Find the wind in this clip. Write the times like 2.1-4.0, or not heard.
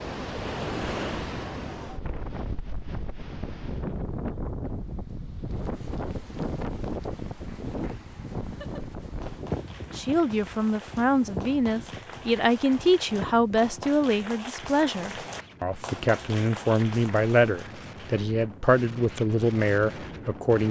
0.0-20.6.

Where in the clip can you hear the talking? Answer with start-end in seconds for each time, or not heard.
9.9-20.6.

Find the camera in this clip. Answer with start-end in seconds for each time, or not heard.
not heard.